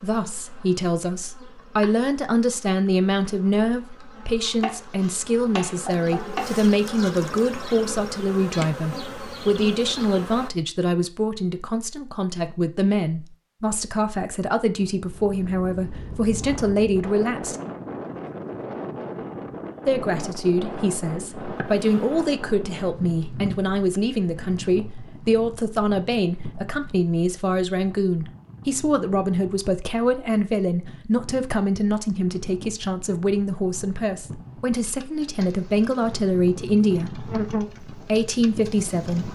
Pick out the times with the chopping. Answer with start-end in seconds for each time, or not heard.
4.6-6.5.